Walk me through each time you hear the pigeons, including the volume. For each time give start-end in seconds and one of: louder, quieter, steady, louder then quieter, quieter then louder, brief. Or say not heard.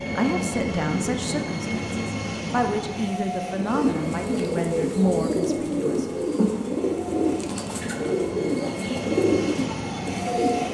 3.5-10.7 steady.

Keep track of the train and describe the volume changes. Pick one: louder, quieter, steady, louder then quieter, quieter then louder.
quieter then louder.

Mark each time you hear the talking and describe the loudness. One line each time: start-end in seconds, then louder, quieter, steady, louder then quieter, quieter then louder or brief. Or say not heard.
0.0-6.0 quieter then louder.